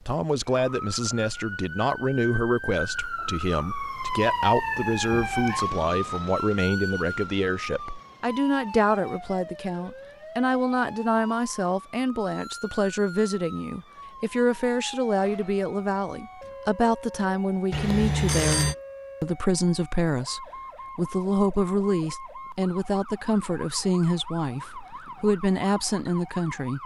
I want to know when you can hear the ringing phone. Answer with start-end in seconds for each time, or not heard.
17.7-18.8.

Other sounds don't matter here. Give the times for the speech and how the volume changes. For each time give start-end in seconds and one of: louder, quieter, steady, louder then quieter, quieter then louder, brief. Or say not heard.
0.1-26.8 steady.